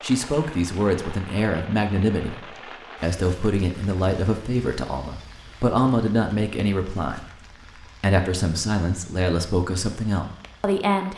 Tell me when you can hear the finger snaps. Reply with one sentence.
You can't hear the finger snaps here.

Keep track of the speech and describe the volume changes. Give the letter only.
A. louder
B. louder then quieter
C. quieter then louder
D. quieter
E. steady
E.